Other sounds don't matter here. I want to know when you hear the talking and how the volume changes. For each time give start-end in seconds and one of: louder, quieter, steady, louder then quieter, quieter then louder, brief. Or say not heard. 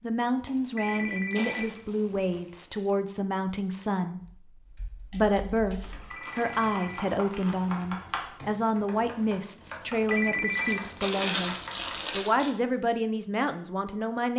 0.0-14.3 steady.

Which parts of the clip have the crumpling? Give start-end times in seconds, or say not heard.
0.4-2.9, 5.8-7.8, 10.5-12.5.